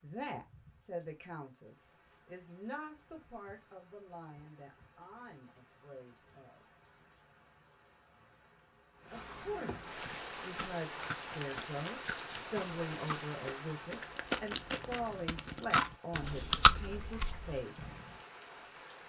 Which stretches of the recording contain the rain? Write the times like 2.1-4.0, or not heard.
0.0-19.0.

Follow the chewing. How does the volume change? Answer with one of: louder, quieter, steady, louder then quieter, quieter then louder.
louder.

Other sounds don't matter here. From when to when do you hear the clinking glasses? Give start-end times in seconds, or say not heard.
not heard.